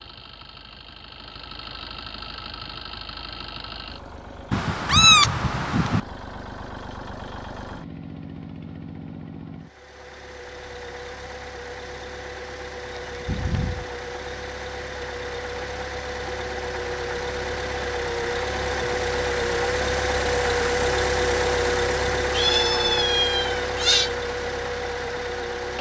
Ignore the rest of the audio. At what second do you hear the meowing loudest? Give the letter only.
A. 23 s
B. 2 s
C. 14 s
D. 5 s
D.